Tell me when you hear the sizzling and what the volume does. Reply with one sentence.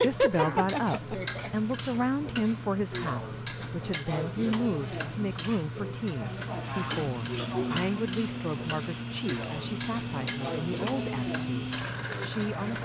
You can hear the sizzling from 0.0 to 12.8 s, at a steady volume.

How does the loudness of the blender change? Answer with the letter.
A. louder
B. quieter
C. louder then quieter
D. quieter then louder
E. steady
E.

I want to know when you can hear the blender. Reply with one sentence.
The blender can be heard from 6.4 to 12.8 s.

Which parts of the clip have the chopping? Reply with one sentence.
The chopping can't be heard in this clip.